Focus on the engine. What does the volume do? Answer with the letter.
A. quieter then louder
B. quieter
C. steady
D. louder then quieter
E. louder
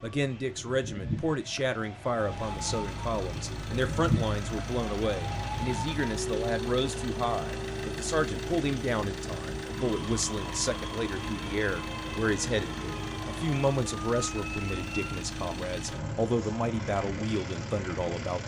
C.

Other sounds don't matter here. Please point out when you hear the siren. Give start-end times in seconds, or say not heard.
0.0-15.2.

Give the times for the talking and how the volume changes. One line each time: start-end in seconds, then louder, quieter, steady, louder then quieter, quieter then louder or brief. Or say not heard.
0.0-18.4 steady.